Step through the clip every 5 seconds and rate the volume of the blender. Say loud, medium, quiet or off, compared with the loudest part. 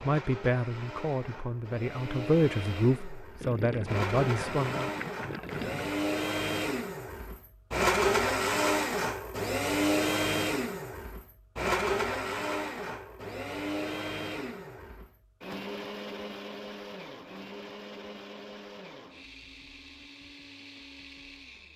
medium, loud, loud, quiet, quiet.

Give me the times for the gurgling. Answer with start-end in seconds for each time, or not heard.
3.4-6.0.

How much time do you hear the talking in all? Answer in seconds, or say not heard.
5 s.